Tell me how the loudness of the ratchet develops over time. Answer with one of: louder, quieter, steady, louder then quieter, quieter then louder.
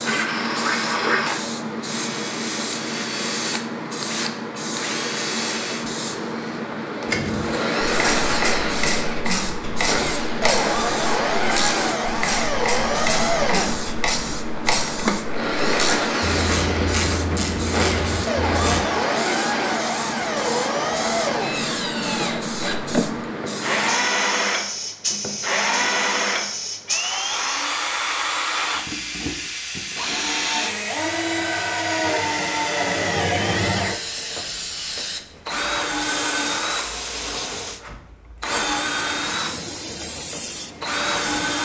steady.